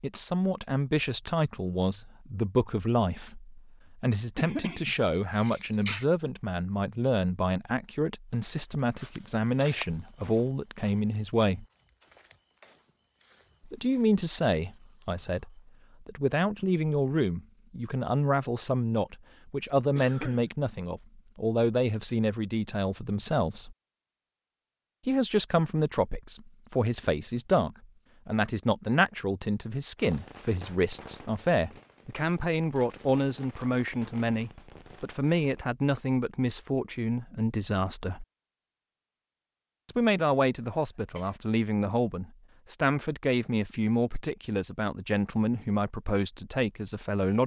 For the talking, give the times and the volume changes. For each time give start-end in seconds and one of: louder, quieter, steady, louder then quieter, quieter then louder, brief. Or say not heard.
0.0-11.7 steady
13.7-23.8 steady
25.1-38.2 steady
39.9-47.4 steady.